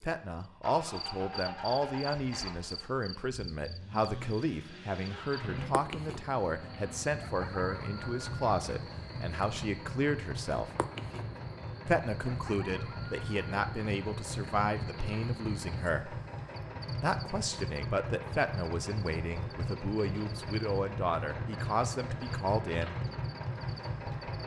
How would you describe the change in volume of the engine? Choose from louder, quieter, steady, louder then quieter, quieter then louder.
louder.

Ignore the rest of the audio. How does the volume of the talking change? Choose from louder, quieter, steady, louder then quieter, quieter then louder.
steady.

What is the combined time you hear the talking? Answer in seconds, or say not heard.
21 s.